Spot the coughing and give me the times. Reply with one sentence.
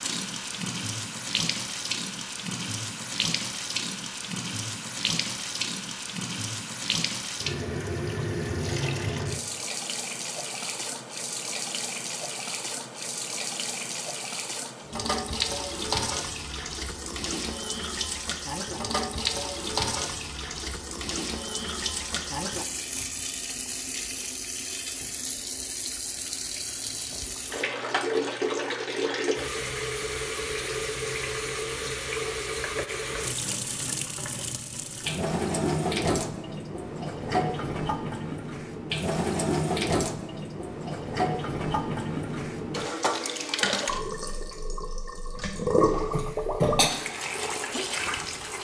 The coughing can be heard from 46.1 to 46.9 s.